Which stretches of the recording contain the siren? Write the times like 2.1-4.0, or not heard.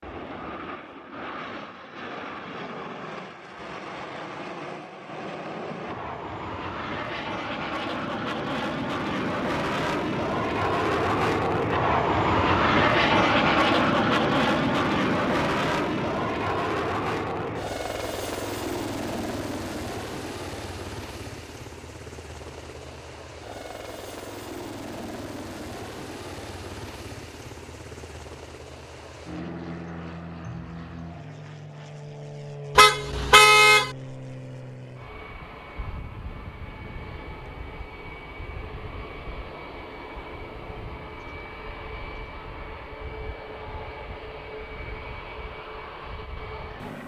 not heard.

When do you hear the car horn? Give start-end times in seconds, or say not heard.
32.8-33.9.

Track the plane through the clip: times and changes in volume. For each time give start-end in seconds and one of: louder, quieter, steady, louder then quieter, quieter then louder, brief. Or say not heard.
0.0-47.0 louder then quieter.